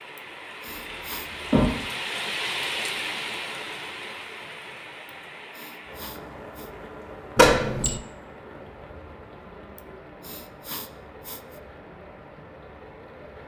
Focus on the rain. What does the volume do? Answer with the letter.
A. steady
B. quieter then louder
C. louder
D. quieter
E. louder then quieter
D.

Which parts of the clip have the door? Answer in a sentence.
You can hear the door from 0.7 to 1.8 s and from 7.3 to 8.0 s.